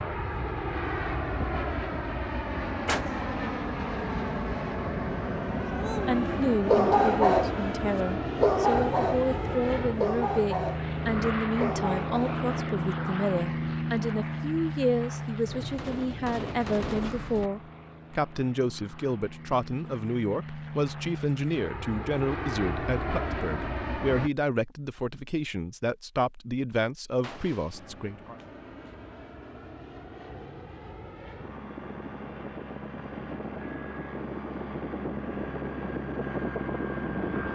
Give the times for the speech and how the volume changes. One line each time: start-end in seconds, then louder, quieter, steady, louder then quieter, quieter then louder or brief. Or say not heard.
6.0-28.4 steady.